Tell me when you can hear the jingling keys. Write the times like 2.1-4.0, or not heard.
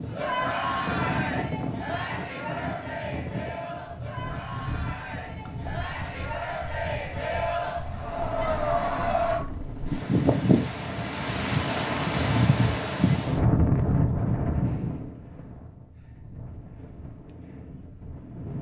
not heard.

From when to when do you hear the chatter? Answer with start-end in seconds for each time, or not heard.
0.0-9.4.